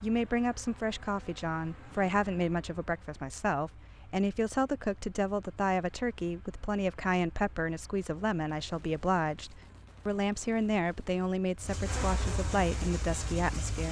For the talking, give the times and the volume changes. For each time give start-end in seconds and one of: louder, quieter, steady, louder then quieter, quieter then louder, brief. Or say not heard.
0.0-13.8 steady.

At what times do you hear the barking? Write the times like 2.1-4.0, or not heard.
not heard.